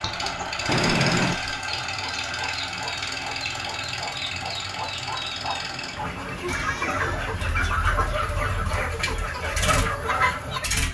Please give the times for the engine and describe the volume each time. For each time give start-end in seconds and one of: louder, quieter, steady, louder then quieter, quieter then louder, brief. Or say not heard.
0.0-10.9 quieter then louder.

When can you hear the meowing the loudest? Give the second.
1 s.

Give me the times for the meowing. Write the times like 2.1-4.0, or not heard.
0.7-1.4, 5.7-7.5.